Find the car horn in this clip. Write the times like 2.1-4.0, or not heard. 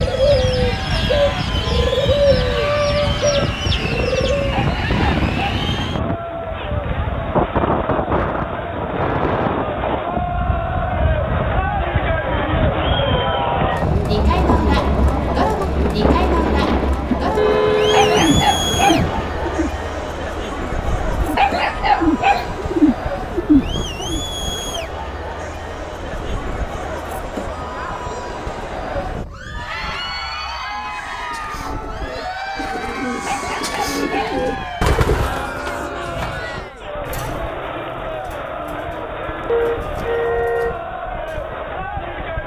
17.4-18.3, 39.5-40.8.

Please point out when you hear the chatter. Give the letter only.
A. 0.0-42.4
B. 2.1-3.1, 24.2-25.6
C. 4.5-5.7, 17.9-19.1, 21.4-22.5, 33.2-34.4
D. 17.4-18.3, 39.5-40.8
A.